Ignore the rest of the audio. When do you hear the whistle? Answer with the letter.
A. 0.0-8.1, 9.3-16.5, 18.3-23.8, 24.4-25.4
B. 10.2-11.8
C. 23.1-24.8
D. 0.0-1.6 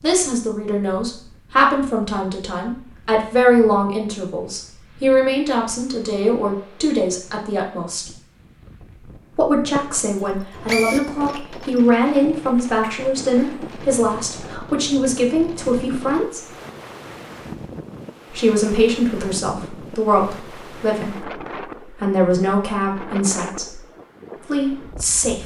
B.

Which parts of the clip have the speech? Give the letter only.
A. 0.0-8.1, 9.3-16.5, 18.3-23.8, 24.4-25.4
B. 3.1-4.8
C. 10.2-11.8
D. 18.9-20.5
A.